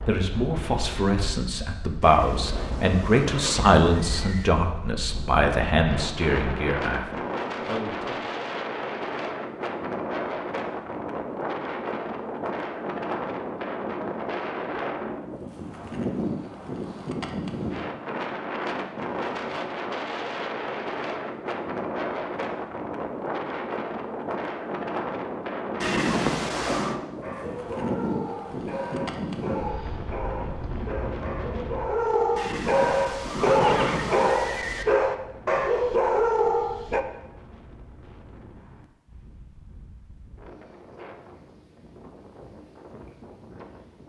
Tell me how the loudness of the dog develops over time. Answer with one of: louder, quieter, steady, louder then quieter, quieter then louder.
louder.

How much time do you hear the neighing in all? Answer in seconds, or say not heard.
6 s.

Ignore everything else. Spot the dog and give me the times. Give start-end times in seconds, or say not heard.
27.2-37.0.